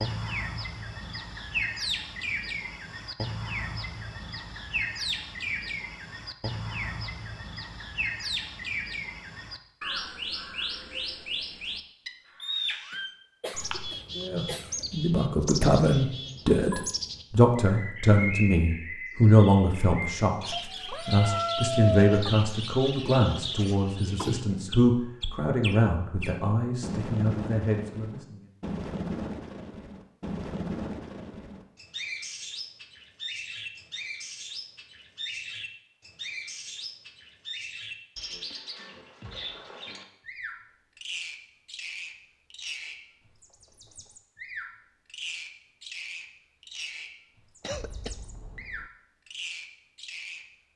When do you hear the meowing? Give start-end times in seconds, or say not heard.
20.5-22.4.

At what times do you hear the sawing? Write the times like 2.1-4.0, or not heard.
not heard.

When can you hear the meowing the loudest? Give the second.
22 s.